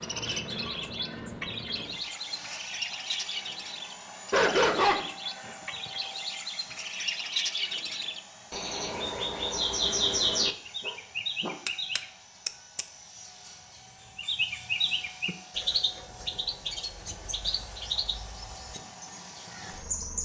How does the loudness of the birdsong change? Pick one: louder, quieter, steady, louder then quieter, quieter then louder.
louder then quieter.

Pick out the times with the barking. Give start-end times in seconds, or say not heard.
4.3-5.5, 10.8-11.6.